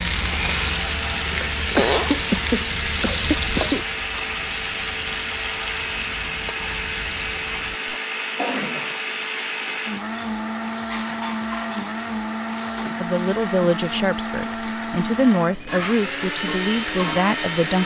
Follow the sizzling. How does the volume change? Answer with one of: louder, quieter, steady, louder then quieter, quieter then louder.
quieter.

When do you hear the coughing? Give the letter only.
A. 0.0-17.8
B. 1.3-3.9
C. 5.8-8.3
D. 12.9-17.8
B.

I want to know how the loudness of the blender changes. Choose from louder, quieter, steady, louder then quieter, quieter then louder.
steady.